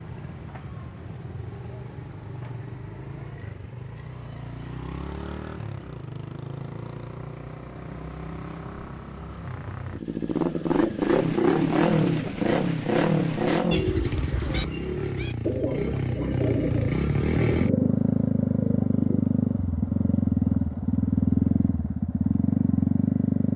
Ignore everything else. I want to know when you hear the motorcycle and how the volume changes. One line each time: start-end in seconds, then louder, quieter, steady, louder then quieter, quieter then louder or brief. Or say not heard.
0.0-23.5 louder.